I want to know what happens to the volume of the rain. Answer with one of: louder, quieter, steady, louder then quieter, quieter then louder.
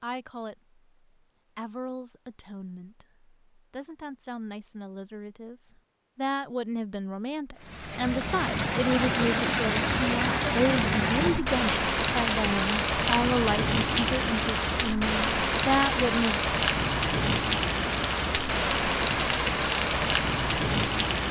steady.